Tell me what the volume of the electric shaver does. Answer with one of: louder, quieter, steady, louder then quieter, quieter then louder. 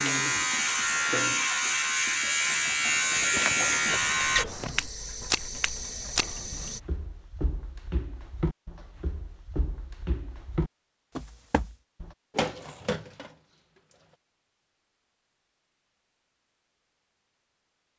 steady.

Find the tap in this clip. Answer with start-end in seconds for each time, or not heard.
0.0-6.8, 12.3-14.2.